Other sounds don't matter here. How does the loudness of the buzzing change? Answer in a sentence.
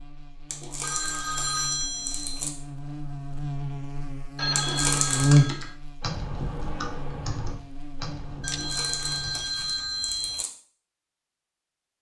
The loudness of the buzzing goes up, then down.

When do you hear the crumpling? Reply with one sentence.
You can hear the crumpling from 0.5 to 2.5 s, from 4.5 to 5.3 s and from 8.4 to 10.5 s.